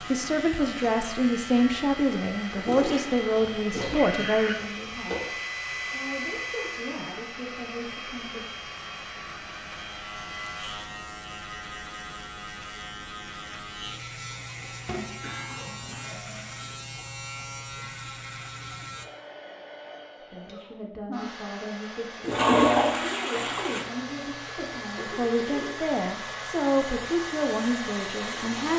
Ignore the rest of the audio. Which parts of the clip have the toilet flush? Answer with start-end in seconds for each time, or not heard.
2.5-4.5, 14.8-16.6, 22.2-23.9.